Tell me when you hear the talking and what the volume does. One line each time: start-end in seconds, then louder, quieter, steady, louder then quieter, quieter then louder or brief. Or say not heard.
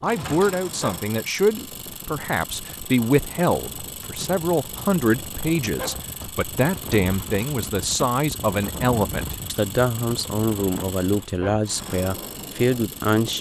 0.0-13.3 steady.